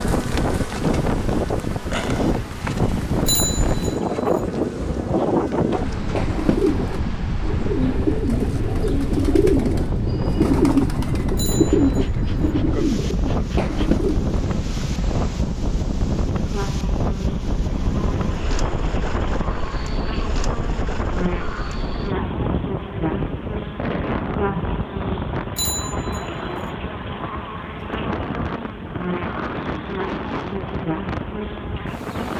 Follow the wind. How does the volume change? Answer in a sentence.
The loudness of the wind goes down.